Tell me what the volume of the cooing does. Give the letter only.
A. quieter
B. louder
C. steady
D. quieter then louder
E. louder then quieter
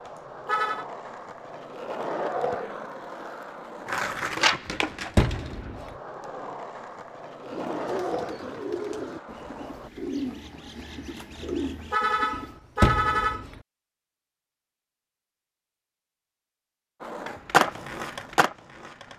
D.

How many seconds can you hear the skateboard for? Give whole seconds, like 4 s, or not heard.
12 s.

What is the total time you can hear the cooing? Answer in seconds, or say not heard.
5 s.